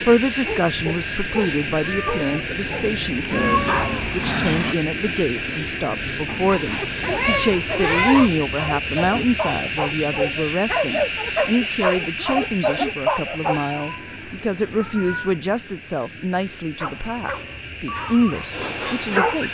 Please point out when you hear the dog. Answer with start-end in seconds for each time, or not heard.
0.0-4.8, 6.2-13.6, 16.8-19.4.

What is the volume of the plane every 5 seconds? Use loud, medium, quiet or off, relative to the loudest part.
loud, loud, loud, medium.